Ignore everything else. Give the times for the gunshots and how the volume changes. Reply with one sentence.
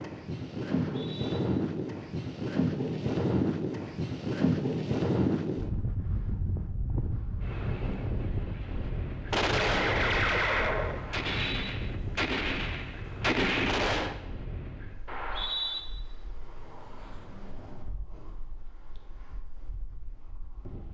You can hear the gunshots from 9.3 to 14.2 s, getting quieter then louder.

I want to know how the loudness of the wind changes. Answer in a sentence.
The volume of the wind goes down.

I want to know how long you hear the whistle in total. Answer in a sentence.
You can hear the whistle for 2 seconds altogether.